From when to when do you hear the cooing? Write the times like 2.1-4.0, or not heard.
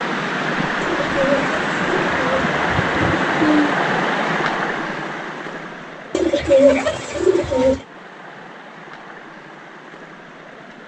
0.8-3.8, 6.1-7.8.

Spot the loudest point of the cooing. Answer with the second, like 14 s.
7 s.